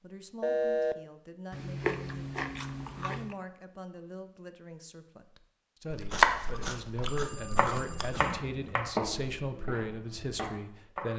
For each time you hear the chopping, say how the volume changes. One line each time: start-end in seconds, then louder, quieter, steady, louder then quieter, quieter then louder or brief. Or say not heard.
6.2-11.1 louder then quieter.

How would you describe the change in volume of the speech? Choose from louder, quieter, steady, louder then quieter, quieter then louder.
louder.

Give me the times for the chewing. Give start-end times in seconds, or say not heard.
1.5-3.4, 5.9-8.2.